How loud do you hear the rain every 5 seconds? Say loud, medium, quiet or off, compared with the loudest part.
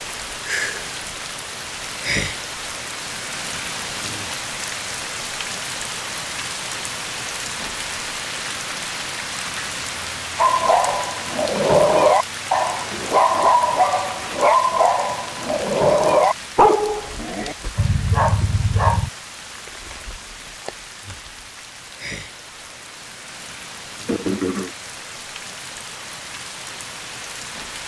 loud, loud, loud, medium, medium, medium.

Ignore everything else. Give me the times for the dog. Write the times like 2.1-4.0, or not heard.
10.3-19.1.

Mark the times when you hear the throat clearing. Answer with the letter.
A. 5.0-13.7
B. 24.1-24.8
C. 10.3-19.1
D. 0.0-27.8
B.